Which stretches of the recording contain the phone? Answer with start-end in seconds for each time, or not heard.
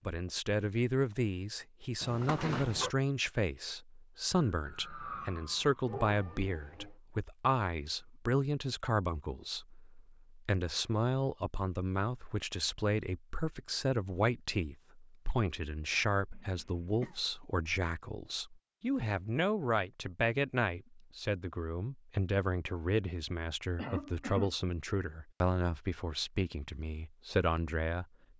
2.0-2.9.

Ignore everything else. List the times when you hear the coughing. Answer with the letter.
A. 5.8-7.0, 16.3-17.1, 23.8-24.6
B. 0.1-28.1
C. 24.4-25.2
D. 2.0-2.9
A.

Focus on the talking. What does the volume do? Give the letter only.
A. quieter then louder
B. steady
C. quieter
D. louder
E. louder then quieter
B.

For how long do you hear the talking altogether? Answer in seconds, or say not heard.
28 s.